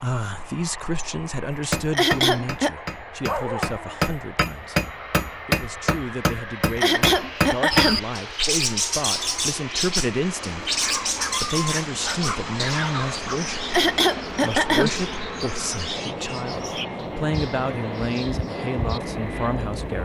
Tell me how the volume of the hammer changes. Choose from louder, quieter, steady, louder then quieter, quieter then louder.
louder.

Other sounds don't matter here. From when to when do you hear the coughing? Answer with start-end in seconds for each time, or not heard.
1.9-2.8, 6.8-8.0, 13.7-14.9.